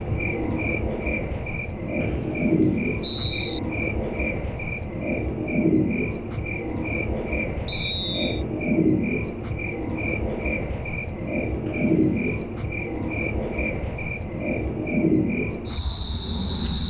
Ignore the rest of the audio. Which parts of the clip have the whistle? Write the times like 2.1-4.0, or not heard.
2.0-3.6, 7.7-8.4, 11.7-12.3.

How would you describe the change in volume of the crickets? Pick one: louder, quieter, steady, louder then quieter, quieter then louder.
steady.